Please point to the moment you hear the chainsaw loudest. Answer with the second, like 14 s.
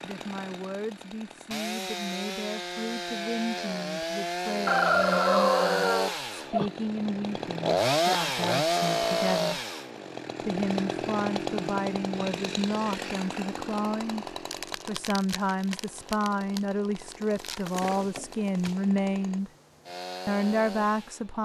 8 s.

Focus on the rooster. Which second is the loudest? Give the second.
5 s.